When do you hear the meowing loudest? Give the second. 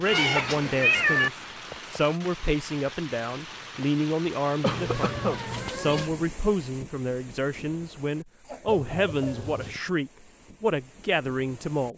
1 s.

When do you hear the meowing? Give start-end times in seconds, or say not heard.
0.1-1.3, 4.7-6.1, 8.7-9.8.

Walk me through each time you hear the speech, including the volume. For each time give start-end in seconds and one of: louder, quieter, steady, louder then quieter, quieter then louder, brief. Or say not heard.
0.0-11.9 steady.